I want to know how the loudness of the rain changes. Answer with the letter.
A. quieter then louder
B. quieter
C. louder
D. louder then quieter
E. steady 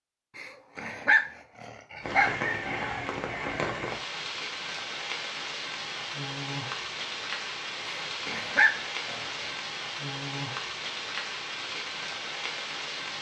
E.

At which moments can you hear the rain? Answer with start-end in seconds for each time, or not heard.
2.0-13.1.